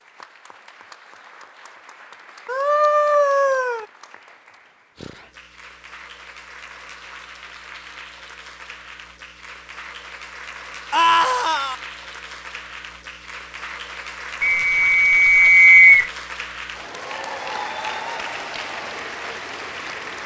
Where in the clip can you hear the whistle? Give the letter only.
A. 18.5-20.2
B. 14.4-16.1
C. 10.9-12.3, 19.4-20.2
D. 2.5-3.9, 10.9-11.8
B.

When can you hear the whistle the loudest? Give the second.
16 s.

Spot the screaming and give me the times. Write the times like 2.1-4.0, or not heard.
2.5-3.9, 10.9-11.8.